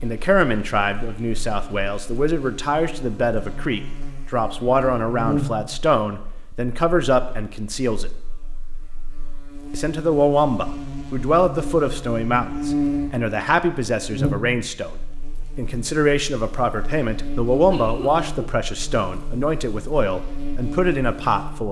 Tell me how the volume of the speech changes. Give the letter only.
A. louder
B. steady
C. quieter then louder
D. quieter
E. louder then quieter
B.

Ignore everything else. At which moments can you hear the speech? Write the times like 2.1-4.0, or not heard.
0.0-8.1, 9.7-14.9, 15.6-21.6.